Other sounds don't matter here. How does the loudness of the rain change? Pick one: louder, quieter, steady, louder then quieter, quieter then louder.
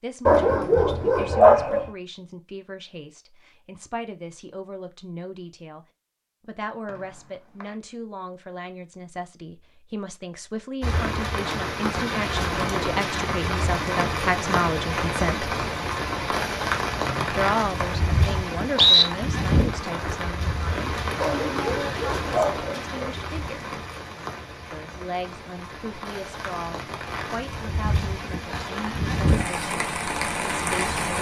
quieter then louder.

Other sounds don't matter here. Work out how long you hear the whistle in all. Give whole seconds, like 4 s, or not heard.
3 s.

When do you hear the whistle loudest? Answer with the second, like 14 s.
19 s.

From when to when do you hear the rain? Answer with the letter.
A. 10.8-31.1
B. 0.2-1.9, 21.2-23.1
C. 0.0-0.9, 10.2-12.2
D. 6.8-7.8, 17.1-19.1
A.